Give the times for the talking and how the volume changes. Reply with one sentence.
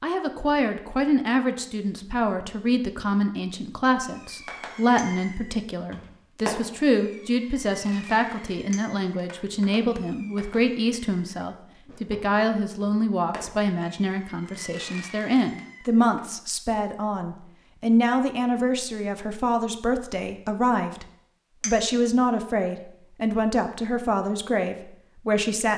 The talking can be heard from 0.0 to 25.7 s, at a steady volume.